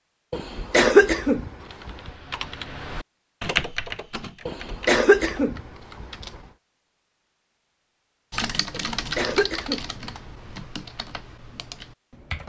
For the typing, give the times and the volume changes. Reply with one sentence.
You can hear the typing from 1.6 to 6.5 s, getting louder then quieter; and from 8.3 to 12.4 s, getting quieter.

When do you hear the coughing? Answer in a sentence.
You can hear the coughing from 0.3 to 2.1 s, from 4.5 to 6.2 s and from 8.7 to 10.6 s.